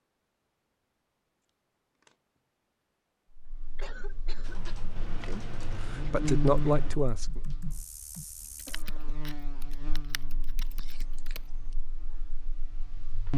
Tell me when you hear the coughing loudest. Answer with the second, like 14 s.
4 s.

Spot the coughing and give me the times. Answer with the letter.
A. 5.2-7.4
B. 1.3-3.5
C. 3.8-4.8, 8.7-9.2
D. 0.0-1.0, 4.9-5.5
C.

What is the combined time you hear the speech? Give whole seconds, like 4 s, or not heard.
2 s.